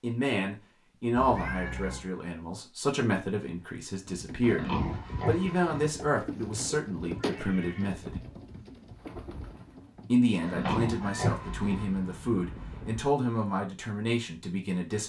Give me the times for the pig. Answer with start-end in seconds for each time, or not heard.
4.4-5.9, 10.4-11.8.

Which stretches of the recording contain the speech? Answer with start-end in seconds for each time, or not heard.
0.0-8.2, 10.1-15.0.